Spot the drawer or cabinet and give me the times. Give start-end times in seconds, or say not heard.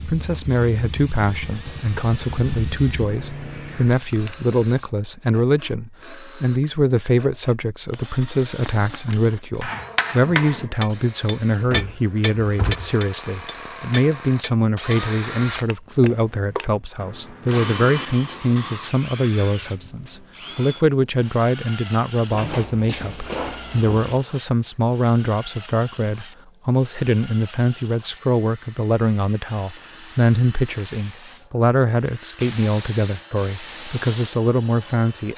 11.6-12.9, 22.3-24.2.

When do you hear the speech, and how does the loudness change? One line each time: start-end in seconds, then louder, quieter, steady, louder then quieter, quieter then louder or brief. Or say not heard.
0.1-35.3 steady.